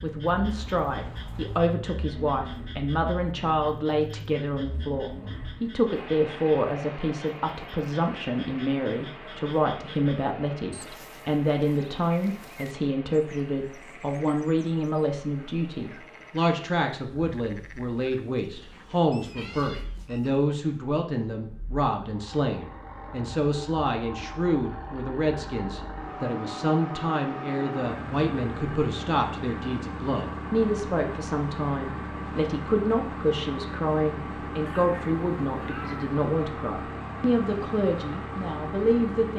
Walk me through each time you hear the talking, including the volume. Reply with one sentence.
You can hear the talking from 0.0 to 39.3 s, at a steady volume.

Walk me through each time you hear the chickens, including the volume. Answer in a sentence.
The chickens can't be heard in this clip.